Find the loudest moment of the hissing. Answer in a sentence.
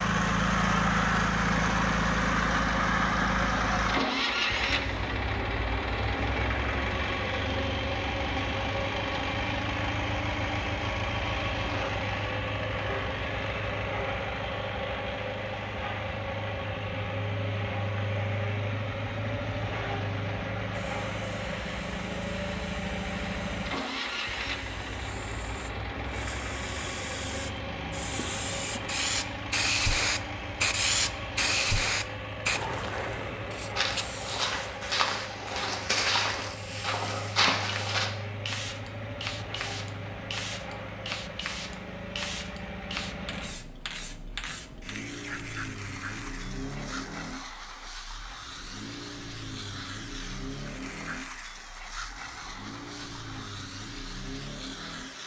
The volume of the hissing peaks at 31 seconds.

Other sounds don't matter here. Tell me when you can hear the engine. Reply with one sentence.
You can hear the engine from 0.0 to 55.2 s.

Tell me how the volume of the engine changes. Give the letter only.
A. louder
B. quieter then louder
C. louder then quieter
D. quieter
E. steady
D.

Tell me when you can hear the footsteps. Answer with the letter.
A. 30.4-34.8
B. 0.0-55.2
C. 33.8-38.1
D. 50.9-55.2
C.